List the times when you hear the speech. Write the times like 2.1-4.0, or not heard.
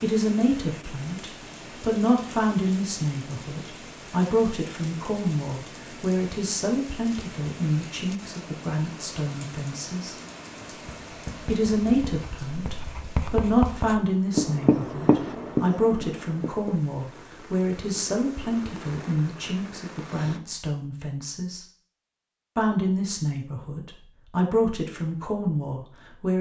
0.0-10.2, 11.4-21.6, 22.6-26.3.